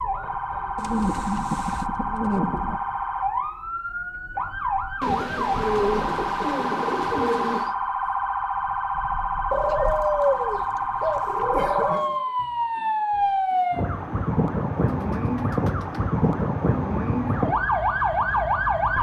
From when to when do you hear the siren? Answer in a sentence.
The siren can be heard from 0.0 to 18.9 s.